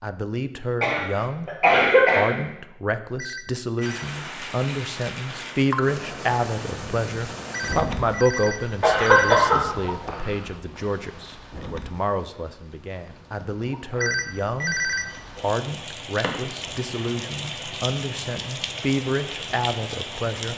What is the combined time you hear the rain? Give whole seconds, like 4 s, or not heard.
17 s.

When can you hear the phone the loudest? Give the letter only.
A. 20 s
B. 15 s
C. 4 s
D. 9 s
B.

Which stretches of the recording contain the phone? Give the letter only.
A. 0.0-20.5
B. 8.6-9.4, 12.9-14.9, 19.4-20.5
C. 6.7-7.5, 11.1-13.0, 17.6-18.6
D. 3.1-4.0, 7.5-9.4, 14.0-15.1
D.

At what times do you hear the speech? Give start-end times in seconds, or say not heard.
0.0-20.5.